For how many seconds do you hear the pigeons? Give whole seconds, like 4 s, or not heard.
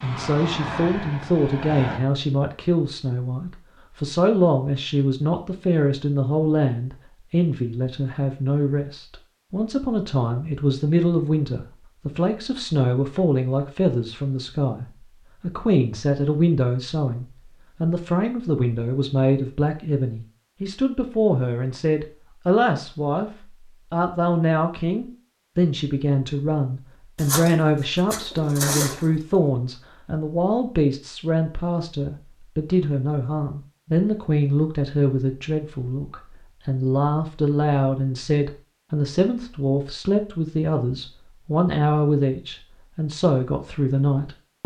2 s.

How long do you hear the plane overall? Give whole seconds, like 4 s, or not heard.
2 s.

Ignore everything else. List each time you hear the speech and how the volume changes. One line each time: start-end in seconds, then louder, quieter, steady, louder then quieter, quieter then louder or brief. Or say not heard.
0.0-44.6 steady.